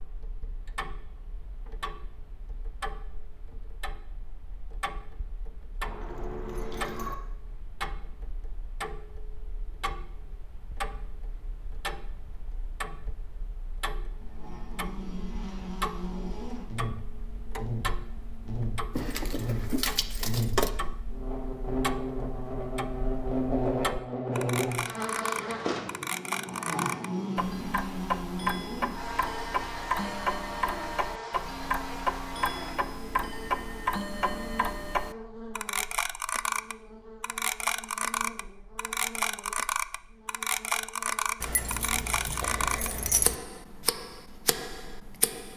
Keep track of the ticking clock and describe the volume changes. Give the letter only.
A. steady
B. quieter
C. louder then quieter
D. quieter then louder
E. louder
E.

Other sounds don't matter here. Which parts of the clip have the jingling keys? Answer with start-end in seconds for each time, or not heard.
5.8-7.2, 18.9-20.7, 41.4-43.4.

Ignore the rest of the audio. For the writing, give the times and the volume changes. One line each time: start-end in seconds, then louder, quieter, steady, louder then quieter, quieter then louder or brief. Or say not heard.
not heard.